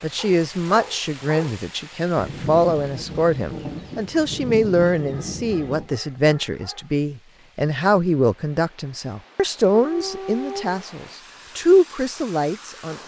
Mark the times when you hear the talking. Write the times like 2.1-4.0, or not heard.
0.0-13.0.